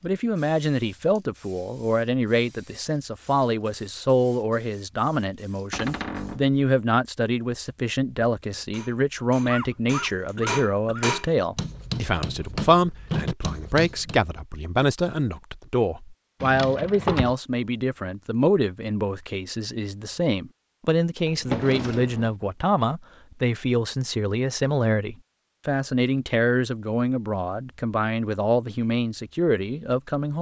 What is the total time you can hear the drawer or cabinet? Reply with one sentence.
The drawer or cabinet can be heard for 3 seconds in total.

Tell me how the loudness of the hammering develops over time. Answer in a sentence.
The volume of the hammering goes up.